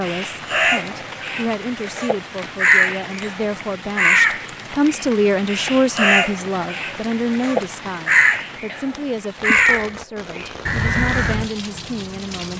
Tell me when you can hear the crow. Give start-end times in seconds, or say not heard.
0.0-11.5.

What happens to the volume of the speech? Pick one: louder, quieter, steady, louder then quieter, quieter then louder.
louder then quieter.